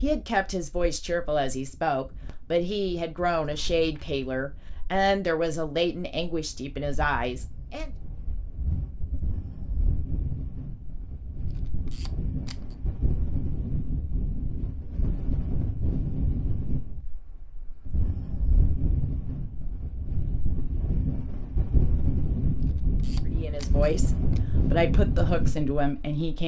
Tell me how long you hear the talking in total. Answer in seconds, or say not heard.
11 s.